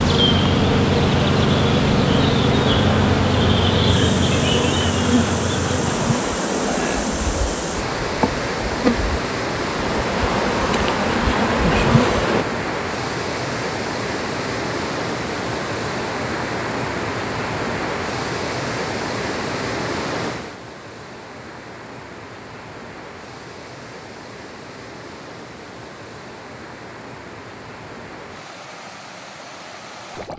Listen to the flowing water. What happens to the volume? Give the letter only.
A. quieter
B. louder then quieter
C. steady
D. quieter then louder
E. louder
A.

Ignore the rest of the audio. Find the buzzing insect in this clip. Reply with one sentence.
You can hear the buzzing insect from 0.0 to 12.4 s.